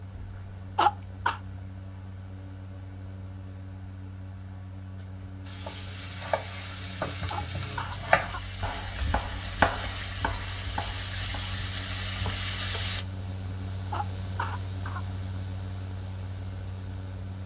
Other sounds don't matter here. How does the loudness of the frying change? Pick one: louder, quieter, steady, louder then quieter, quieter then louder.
louder.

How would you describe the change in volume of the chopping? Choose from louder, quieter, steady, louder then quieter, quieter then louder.
louder then quieter.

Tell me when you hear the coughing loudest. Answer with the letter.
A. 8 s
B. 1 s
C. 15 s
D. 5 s
B.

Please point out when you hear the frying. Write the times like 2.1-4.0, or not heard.
5.4-13.1.